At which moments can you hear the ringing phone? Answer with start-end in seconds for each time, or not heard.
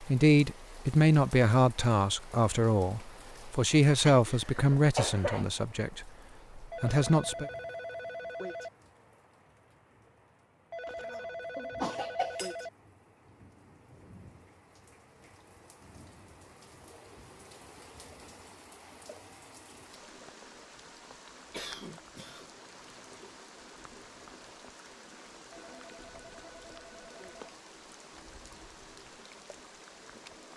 6.7-8.7, 10.7-12.7, 25.5-27.5.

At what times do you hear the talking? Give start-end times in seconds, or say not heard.
0.0-7.5.